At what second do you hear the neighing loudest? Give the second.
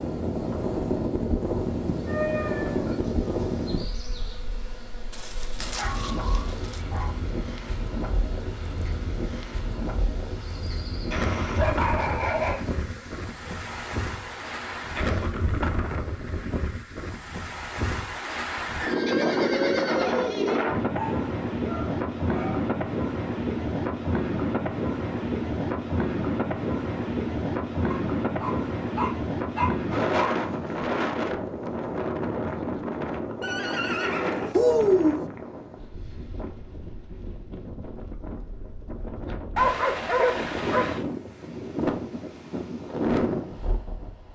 35 s.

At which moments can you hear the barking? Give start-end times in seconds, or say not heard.
5.8-7.2, 11.1-12.7, 20.0-22.6, 27.9-30.4, 39.5-41.0.